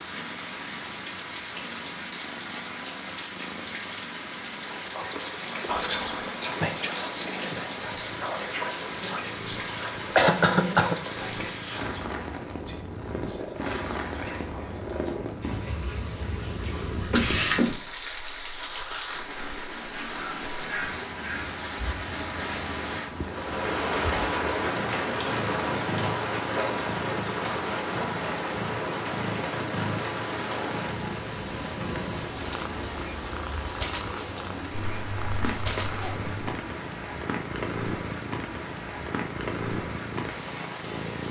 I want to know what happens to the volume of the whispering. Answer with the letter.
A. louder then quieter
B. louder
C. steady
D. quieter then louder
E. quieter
E.